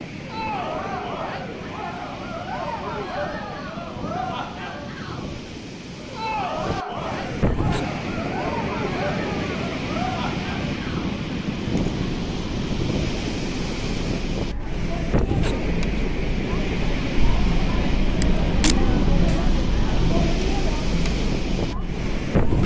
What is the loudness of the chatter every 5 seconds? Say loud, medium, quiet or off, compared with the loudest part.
loud, loud, medium, loud, loud.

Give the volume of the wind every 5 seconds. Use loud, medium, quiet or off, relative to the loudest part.
medium, loud, loud, loud, loud.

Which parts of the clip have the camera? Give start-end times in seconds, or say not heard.
18.2-18.8.